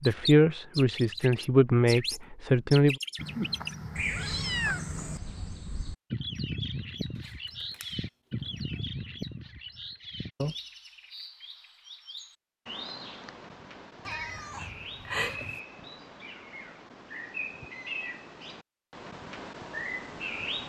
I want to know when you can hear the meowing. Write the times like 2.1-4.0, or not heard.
3.1-5.2, 7.2-8.0, 14.1-15.6.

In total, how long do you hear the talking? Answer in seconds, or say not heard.
3 s.